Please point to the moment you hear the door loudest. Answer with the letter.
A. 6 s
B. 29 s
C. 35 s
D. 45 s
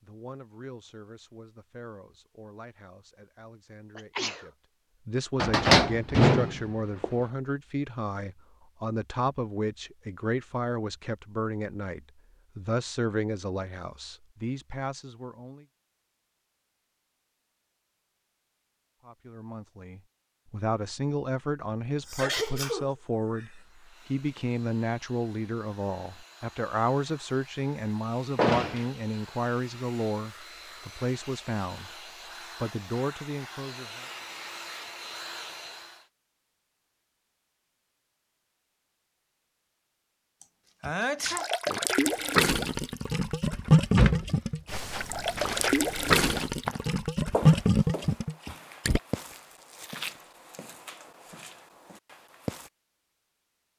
A.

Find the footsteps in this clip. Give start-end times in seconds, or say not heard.
44.6-52.7.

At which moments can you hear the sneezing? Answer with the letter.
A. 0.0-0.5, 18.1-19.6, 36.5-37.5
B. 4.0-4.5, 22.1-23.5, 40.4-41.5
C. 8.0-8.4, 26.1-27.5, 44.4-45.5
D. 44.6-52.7
B.